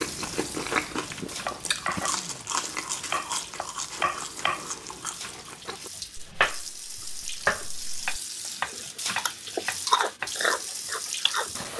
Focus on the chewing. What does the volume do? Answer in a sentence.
The loudness of the chewing goes down, then up.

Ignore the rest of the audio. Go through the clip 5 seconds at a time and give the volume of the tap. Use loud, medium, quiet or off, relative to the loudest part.
medium, loud, loud.